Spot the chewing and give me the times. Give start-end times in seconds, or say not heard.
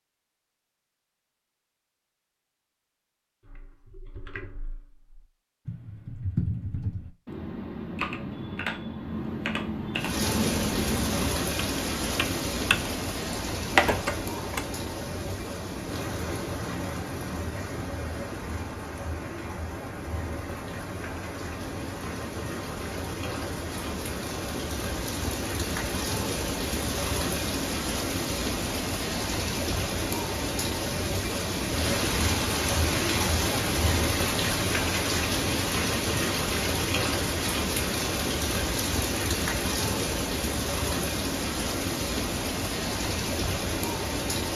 not heard.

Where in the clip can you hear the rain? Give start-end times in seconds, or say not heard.
9.9-44.5.